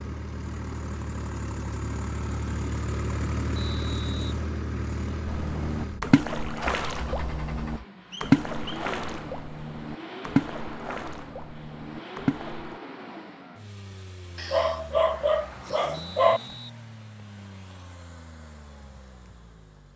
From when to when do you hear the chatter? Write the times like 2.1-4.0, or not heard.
not heard.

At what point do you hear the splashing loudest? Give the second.
8 s.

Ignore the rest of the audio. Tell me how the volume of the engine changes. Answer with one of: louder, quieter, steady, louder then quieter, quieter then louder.
quieter.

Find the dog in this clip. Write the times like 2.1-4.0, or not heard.
14.3-16.4.